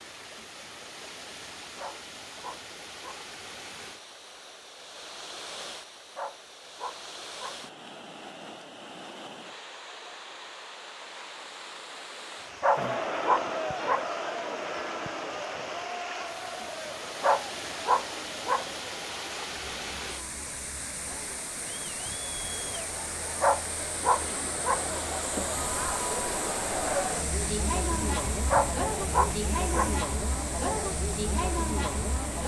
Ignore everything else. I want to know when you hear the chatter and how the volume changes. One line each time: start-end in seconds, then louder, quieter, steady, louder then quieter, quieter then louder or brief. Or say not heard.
12.8-32.4 quieter then louder.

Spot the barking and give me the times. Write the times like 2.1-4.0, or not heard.
1.8-3.2, 6.2-7.6, 12.6-14.1, 17.2-18.6, 23.4-24.9, 28.5-29.9.